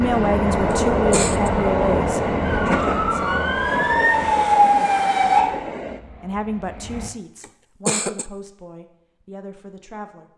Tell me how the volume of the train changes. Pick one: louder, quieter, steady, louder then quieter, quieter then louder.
quieter.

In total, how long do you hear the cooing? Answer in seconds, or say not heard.
not heard.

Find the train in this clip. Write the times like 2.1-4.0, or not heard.
0.0-7.1.